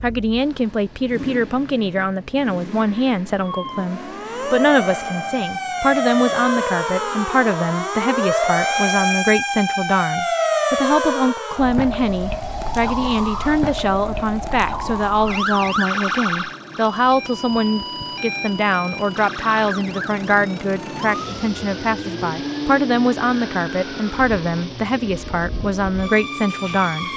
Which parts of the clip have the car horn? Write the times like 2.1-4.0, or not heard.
not heard.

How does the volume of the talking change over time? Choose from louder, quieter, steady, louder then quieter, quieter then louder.
steady.